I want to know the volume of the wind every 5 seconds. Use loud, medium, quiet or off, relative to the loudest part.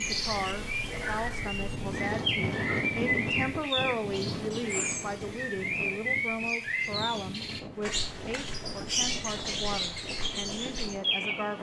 loud, medium, medium.